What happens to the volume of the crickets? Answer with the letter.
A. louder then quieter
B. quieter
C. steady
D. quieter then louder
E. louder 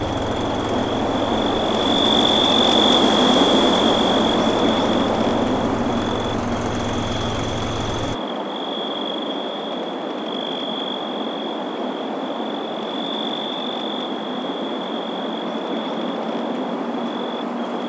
B.